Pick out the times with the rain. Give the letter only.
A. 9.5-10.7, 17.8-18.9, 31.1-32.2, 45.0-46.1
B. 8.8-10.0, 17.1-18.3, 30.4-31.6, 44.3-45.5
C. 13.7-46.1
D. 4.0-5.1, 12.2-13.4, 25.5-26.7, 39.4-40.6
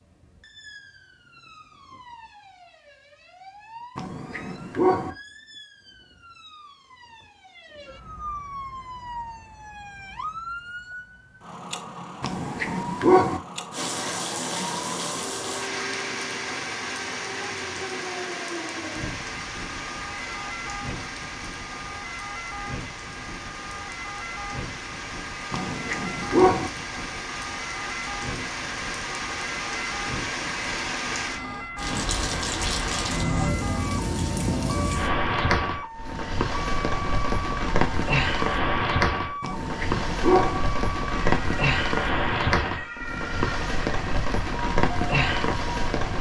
C.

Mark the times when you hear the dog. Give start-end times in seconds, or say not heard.
4.0-5.1, 12.2-13.4, 25.5-26.7, 39.4-40.6.